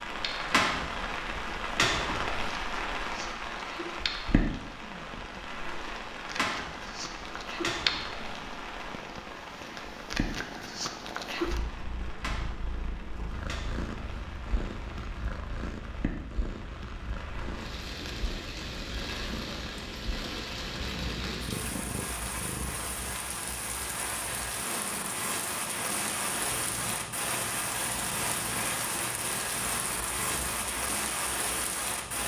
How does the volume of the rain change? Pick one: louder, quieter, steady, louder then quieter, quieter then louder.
quieter then louder.